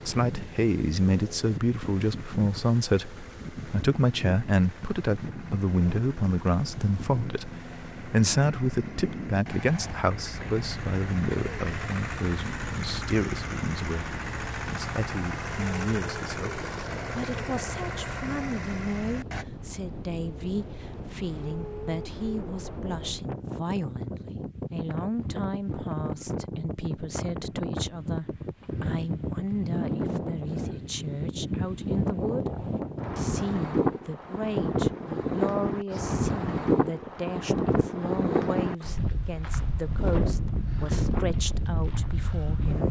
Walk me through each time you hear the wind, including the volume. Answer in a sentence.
The wind can be heard from 0.0 to 42.8 s, getting louder.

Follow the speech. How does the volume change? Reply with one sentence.
The volume of the speech goes down.